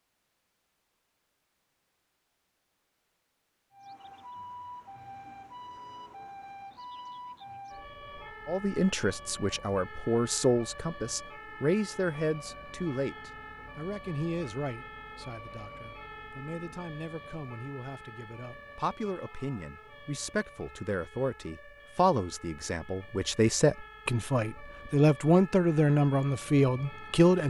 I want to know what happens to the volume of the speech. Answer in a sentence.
The loudness of the speech goes down, then up.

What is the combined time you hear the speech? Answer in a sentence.
The speech can be heard for 19 seconds in total.